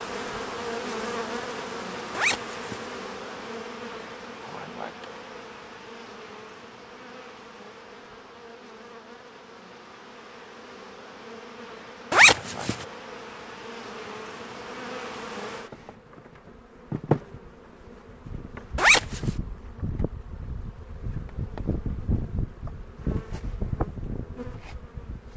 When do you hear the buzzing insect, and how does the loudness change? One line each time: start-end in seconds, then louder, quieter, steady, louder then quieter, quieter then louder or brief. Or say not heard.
0.0-25.3 quieter then louder.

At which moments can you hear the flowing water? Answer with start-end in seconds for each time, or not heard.
not heard.